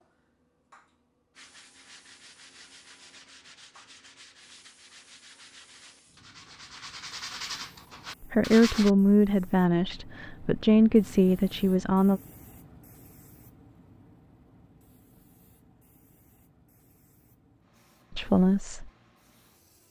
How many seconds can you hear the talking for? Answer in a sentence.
The talking can be heard for 5 seconds in total.